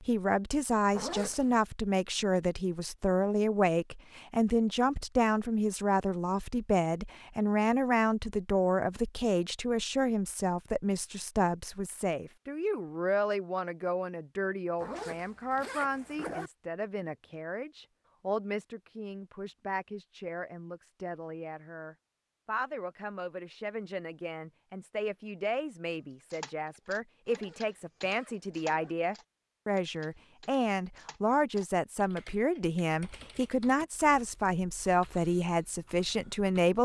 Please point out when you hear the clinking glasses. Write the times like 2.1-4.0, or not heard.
not heard.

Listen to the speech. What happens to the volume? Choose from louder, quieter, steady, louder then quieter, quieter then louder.
quieter then louder.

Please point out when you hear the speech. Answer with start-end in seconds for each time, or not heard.
0.0-36.8.